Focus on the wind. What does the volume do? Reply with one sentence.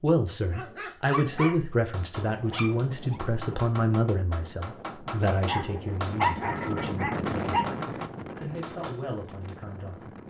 The loudness of the wind goes up, then down.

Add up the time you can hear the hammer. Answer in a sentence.
You can hear the hammer for 8 seconds altogether.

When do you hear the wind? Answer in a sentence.
You can hear the wind from 2.1 to 10.2 s.